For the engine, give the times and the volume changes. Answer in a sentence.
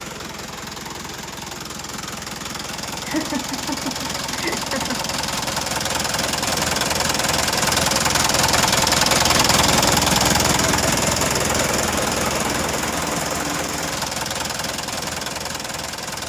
You can hear the engine from 0.0 to 16.2 s, getting louder then quieter.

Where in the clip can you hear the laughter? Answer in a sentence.
You can hear the laughter from 3.0 to 5.0 s.